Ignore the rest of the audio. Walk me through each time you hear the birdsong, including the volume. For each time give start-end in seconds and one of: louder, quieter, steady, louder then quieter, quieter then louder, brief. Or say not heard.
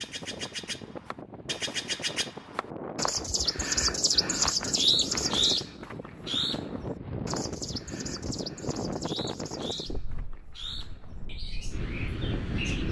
0.0-12.8 louder then quieter.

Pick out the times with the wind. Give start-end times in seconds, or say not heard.
0.0-12.8.